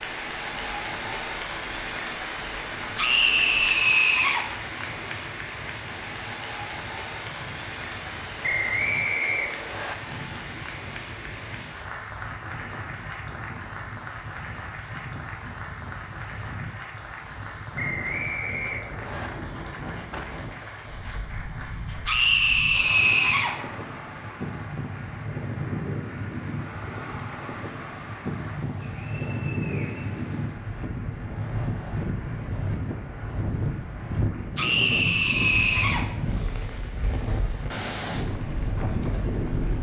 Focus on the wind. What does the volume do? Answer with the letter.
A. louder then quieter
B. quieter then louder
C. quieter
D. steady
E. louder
E.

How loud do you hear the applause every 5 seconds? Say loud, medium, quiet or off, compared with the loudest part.
loud, loud, medium, medium, medium, quiet, quiet, quiet.